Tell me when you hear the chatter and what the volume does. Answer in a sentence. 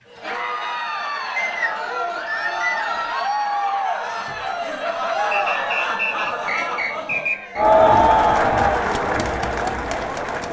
The chatter can be heard from 0.0 to 10.4 s, getting louder.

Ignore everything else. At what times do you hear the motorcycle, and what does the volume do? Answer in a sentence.
The motorcycle can't be heard in this clip.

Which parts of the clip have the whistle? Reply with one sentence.
You can hear the whistle from 1.4 to 3.1 s and from 5.3 to 7.7 s.